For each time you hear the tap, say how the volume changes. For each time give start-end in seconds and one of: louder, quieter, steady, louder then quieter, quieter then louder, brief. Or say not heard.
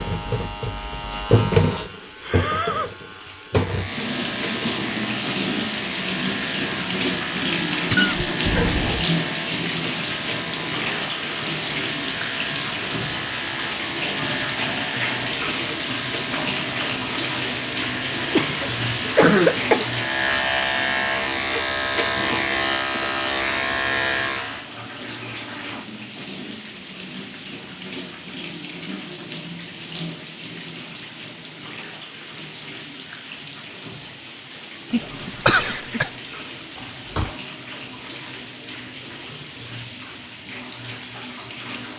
0.0-41.9 quieter.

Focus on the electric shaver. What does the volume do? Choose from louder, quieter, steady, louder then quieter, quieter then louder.
louder.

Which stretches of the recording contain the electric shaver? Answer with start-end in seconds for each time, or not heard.
0.0-24.6.